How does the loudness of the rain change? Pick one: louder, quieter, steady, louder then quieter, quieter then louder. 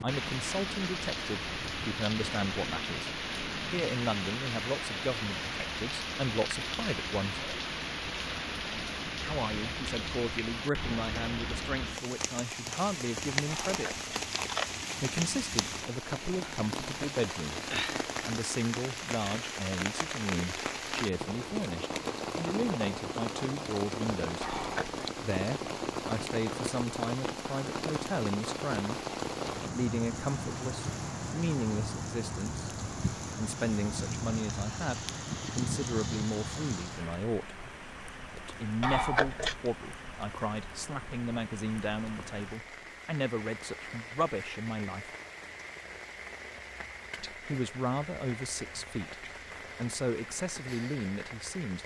quieter.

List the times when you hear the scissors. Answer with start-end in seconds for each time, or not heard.
13.5-14.7, 24.4-25.1, 38.8-39.7.